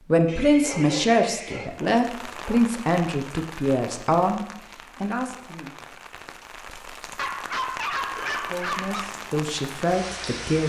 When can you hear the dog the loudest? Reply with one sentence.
The loudest moment of the dog is at 8 seconds.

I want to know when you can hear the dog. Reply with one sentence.
The dog can be heard from 0.6 to 2.6 s and from 7.2 to 9.1 s.